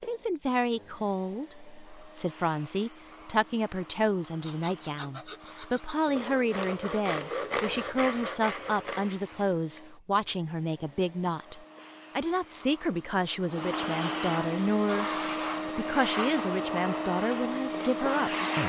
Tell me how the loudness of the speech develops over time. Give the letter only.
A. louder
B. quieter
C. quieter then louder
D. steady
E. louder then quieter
D.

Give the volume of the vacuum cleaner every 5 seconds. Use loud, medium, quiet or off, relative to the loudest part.
quiet, quiet, medium, loud.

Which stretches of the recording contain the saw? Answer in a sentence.
You can hear the saw from 4.4 to 9.8 s.